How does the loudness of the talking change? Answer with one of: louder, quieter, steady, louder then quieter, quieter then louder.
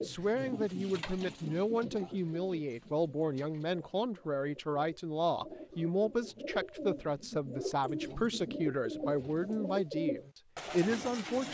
steady.